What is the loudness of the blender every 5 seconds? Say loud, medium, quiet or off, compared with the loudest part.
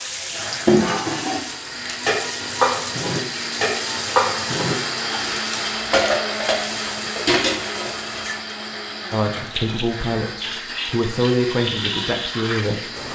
loud, loud, medium.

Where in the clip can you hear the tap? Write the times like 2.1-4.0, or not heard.
0.0-13.1.